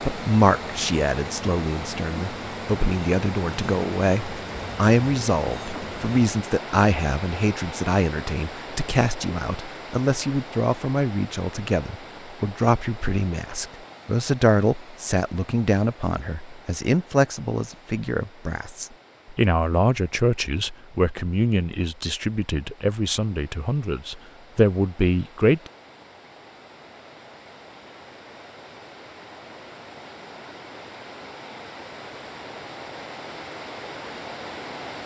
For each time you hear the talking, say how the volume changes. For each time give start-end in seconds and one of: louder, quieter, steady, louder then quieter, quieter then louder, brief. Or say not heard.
0.1-25.7 steady.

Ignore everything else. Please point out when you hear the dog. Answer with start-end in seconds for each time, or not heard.
not heard.